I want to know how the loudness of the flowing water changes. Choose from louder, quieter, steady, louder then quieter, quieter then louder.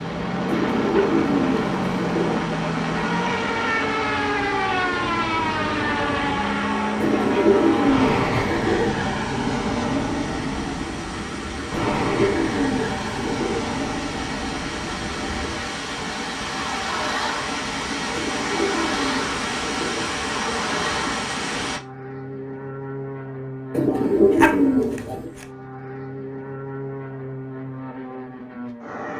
louder.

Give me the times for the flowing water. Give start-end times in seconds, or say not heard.
0.0-21.8.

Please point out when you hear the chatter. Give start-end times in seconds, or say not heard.
not heard.